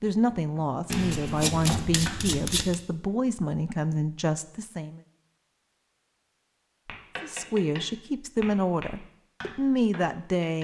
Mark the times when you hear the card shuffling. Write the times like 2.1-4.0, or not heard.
0.8-2.8.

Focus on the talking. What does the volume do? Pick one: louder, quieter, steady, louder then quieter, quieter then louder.
steady.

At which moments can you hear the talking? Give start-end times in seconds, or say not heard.
0.0-5.0, 7.2-10.5.